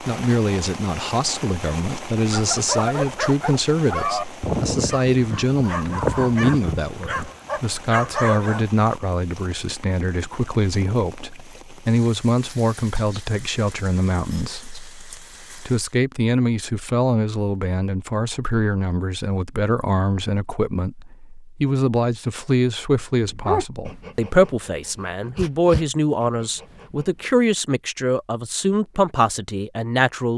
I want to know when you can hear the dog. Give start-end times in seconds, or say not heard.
2.3-8.7, 23.2-27.4.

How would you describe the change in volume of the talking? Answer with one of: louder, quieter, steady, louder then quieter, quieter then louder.
steady.